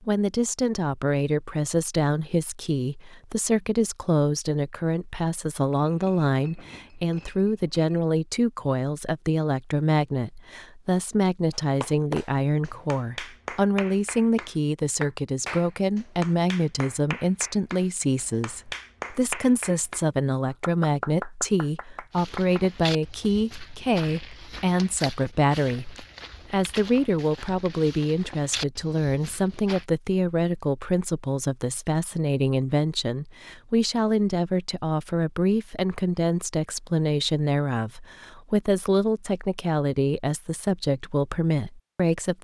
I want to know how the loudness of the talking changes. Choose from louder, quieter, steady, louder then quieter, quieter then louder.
steady.